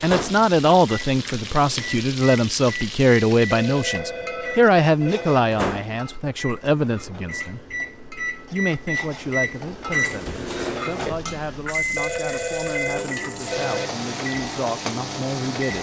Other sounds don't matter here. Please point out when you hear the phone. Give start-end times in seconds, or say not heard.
3.5-5.4, 11.9-13.9.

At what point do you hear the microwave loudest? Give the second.
10 s.